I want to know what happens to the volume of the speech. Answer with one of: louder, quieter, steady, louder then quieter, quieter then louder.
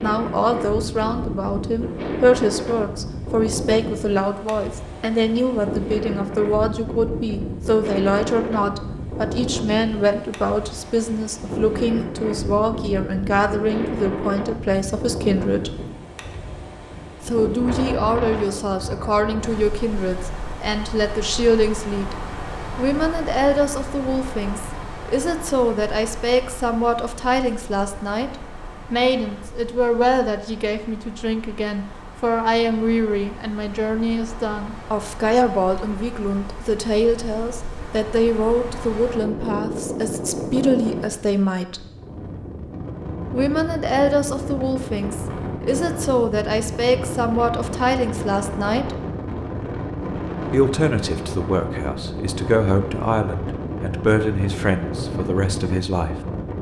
steady.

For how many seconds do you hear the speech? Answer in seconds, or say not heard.
51 s.